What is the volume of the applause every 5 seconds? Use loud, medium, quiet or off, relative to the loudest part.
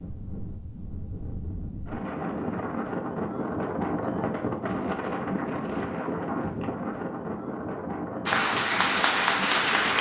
off, loud.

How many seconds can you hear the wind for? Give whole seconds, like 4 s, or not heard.
10 s.